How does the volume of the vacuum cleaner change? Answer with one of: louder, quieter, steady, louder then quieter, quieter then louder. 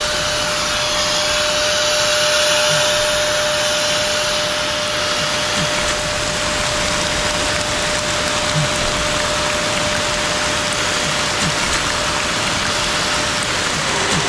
quieter.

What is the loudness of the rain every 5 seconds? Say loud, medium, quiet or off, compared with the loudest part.
medium, loud, loud.